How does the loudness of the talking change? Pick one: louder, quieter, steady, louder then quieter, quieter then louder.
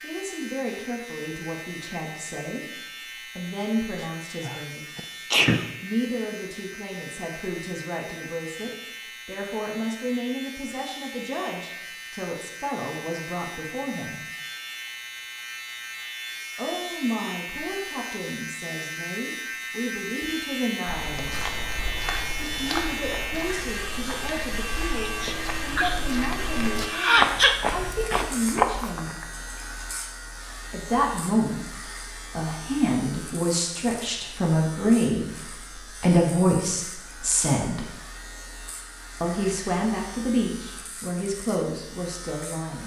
louder.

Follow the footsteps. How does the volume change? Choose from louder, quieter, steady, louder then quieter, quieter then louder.
louder.